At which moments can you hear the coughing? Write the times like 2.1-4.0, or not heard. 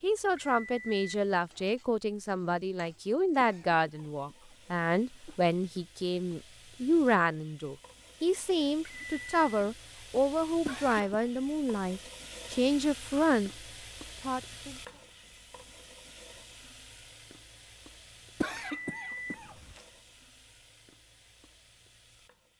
3.4-5.4, 10.7-11.2, 18.4-19.8.